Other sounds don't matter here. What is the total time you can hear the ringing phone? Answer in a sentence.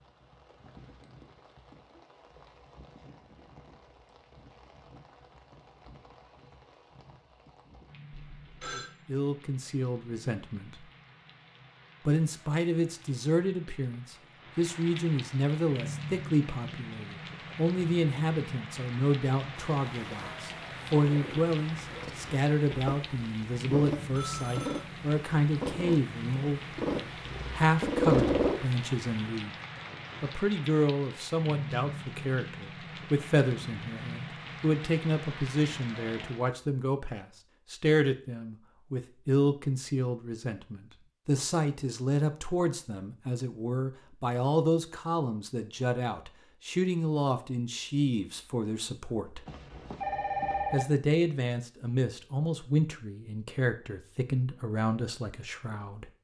The ringing phone can be heard for 3 seconds in total.